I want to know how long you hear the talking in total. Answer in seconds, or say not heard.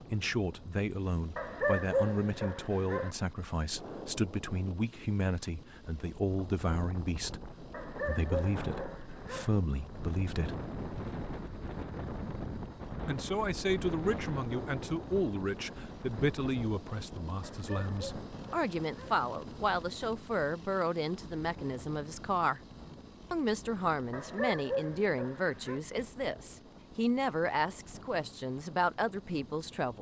27 s.